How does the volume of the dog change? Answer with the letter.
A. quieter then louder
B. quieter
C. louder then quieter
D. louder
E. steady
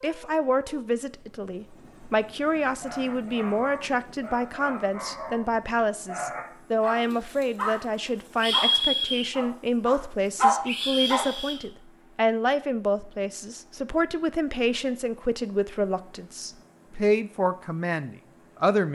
D.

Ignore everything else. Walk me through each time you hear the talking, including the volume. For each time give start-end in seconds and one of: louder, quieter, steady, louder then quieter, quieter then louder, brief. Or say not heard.
0.0-18.9 steady.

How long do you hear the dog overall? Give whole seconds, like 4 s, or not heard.
8 s.